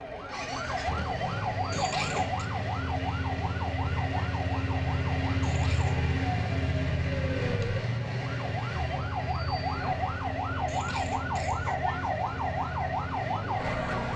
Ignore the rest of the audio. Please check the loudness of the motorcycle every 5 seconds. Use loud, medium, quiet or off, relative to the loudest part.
loud, loud, medium.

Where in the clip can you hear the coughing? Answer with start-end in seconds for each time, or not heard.
1.7-2.5, 5.4-6.0, 10.7-11.8.